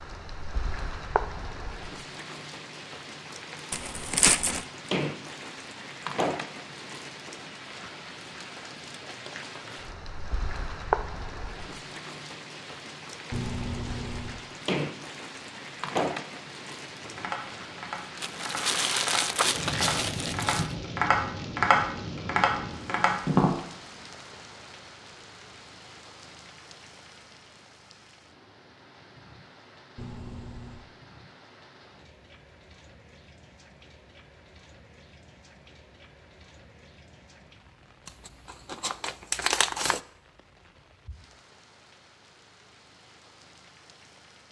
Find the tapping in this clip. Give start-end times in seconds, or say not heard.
17.0-23.6.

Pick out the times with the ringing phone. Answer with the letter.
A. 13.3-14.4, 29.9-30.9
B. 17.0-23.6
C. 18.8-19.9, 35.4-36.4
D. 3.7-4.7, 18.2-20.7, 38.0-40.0
A.